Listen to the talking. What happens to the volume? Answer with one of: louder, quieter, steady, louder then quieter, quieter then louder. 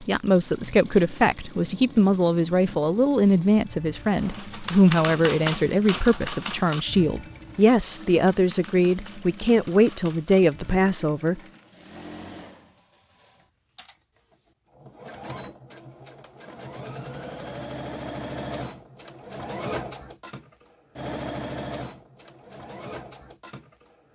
steady.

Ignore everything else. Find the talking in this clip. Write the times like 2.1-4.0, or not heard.
0.0-11.4.